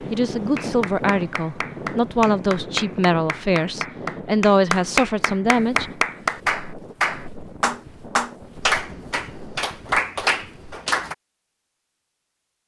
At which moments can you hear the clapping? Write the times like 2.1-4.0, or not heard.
0.6-11.2.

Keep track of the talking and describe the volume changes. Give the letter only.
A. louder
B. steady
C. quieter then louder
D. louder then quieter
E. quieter
B.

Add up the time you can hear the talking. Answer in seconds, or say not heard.
6 s.